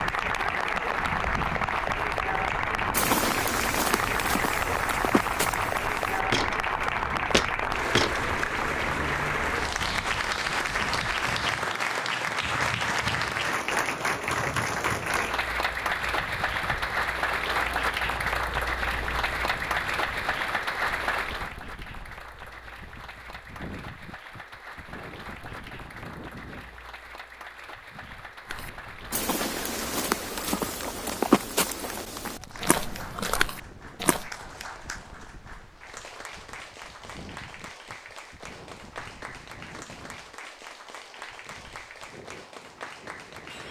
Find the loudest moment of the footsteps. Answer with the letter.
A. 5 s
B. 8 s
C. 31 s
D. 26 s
C.